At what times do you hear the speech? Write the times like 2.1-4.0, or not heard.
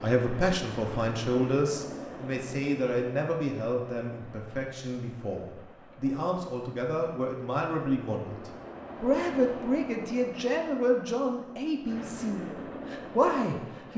0.0-13.9.